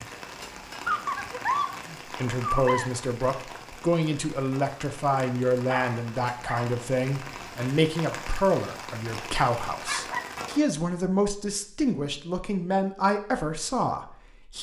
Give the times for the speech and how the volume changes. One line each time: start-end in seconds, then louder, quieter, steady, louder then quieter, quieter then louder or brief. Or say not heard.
1.9-14.5 steady.